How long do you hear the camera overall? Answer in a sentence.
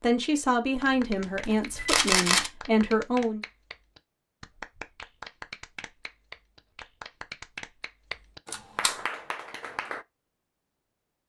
You can hear the camera for 2 seconds altogether.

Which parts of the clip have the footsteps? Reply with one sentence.
The footsteps can't be heard in this clip.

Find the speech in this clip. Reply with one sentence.
You can hear the speech from 0.0 to 3.4 s.